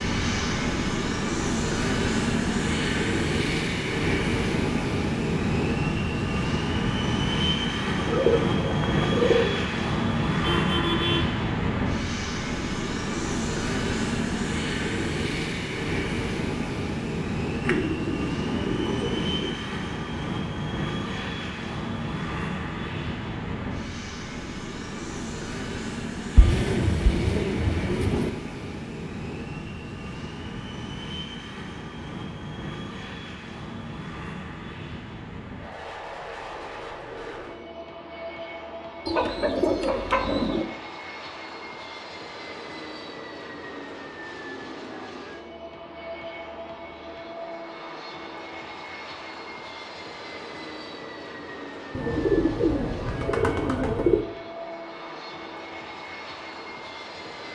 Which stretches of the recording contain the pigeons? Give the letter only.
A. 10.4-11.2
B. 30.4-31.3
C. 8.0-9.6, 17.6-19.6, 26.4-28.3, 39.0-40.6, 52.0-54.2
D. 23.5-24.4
C.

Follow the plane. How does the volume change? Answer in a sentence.
The loudness of the plane goes down.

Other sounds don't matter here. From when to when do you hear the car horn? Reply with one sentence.
You can hear the car horn from 10.4 to 11.2 s.